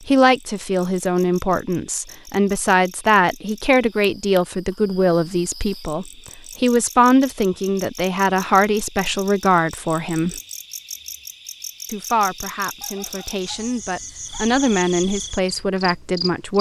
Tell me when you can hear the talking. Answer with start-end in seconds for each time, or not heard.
0.1-10.4, 11.9-16.5.